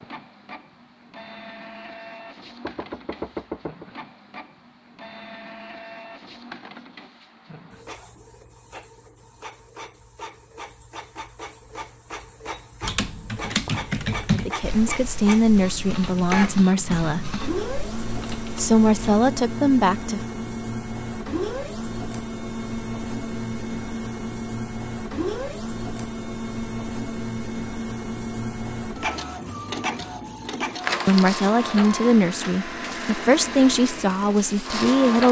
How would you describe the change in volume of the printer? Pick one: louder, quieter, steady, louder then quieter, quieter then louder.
louder.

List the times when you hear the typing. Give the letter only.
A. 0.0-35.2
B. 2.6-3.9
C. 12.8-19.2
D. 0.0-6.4
C.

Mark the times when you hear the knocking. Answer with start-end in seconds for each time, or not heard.
2.6-3.9.